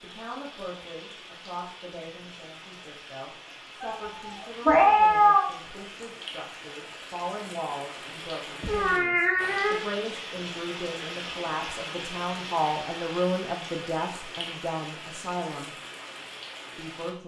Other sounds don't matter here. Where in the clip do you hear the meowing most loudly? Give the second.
5 s.